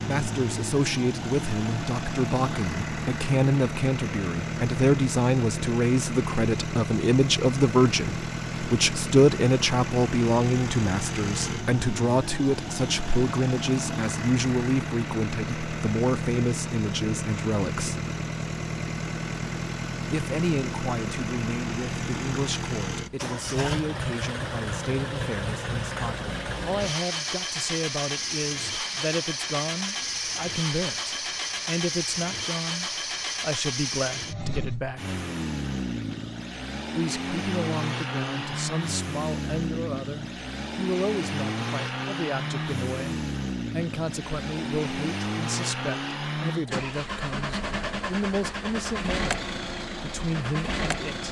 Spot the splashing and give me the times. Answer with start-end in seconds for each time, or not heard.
not heard.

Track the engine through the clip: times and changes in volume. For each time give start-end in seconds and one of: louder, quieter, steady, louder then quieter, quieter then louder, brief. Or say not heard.
0.0-51.2 steady.